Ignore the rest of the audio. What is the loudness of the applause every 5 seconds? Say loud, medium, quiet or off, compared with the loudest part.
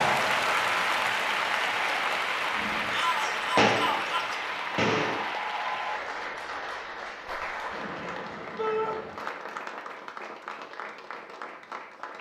loud, medium, quiet.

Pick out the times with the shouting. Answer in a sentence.
You can hear the shouting from 2.9 to 4.4 s and from 8.6 to 9.0 s.